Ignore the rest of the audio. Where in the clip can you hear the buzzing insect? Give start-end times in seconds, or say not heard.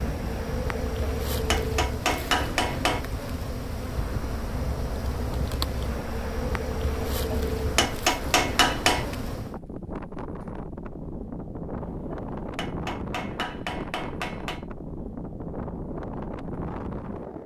0.0-9.6.